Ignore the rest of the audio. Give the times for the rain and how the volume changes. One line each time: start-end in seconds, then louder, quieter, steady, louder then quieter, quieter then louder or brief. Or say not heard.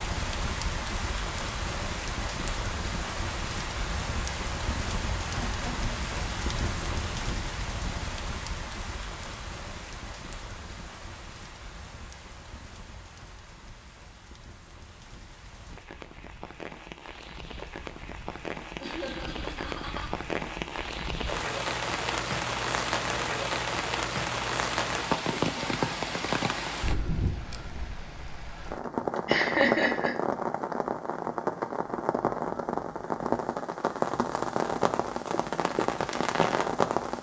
0.0-37.1 quieter then louder.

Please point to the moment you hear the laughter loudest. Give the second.
30 s.